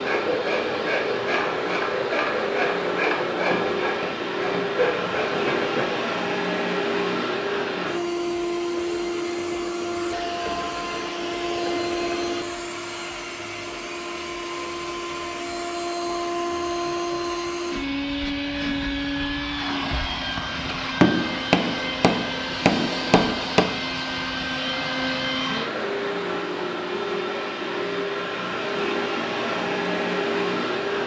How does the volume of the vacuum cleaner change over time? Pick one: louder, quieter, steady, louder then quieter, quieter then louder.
steady.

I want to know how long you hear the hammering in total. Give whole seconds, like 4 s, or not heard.
4 s.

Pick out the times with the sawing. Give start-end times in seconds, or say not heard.
0.0-6.0.